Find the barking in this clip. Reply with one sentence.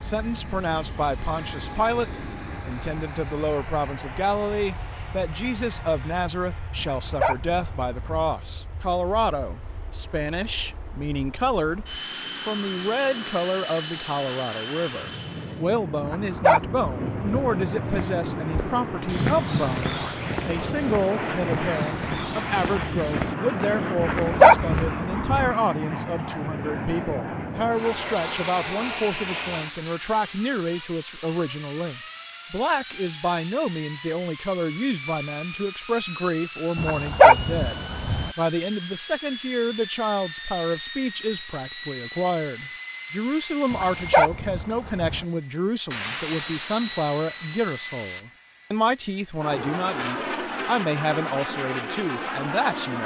The barking can be heard from 6.8 to 8.3 s, from 16.0 to 17.6 s, from 23.9 to 25.5 s, from 36.8 to 38.3 s and from 43.7 to 45.2 s.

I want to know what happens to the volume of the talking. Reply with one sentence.
The volume of the talking stays about the same.